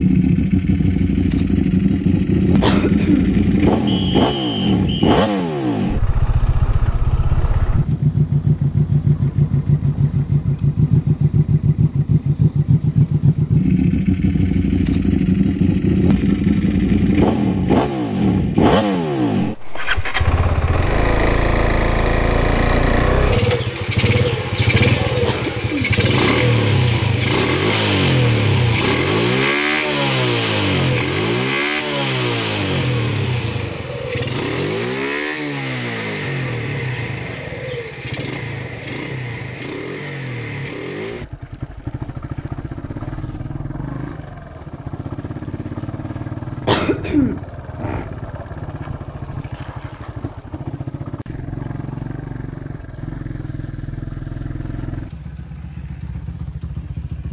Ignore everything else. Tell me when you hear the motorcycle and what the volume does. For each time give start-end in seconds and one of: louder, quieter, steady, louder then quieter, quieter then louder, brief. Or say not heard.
0.0-57.2 quieter.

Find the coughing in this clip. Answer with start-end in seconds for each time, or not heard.
2.6-3.4, 25.2-26.1, 46.6-48.0.